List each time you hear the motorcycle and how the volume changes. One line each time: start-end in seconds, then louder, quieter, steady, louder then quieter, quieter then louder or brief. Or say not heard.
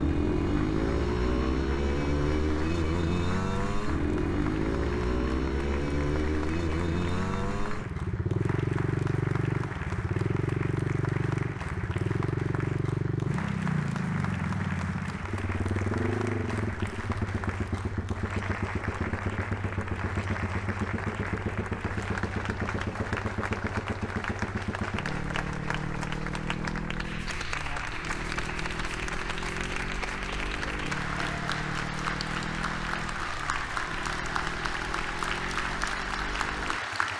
0.0-37.1 quieter.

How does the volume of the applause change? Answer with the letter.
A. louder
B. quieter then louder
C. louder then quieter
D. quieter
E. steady
A.